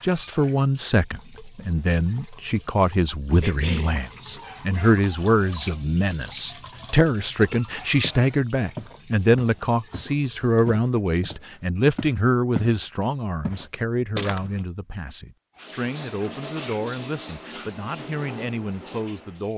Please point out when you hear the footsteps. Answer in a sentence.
You can hear the footsteps from 7.4 to 12.8 s and from 13.4 to 14.7 s.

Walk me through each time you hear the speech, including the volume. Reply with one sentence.
You can hear the speech from 0.0 to 19.5 s, getting quieter.